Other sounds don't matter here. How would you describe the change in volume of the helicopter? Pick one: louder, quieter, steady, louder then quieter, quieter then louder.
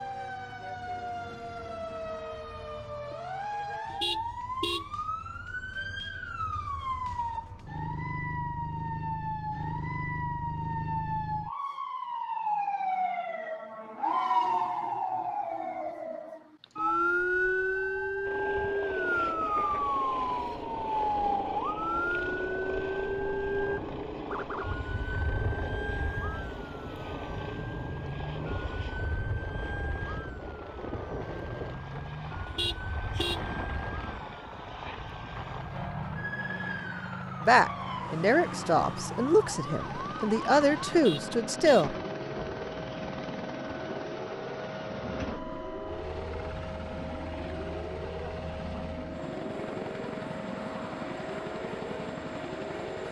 steady.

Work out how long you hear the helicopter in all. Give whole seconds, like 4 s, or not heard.
35 s.